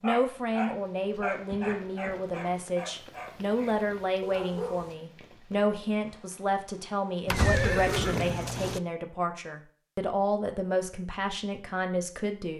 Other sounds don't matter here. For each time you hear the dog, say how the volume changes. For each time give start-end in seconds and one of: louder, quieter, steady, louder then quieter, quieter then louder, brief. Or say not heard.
0.0-4.9 quieter.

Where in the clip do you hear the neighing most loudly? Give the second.
8 s.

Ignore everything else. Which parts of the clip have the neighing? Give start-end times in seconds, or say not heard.
1.4-2.3, 7.2-8.8.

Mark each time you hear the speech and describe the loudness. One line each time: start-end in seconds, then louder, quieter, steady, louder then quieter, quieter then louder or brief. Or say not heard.
0.0-12.5 steady.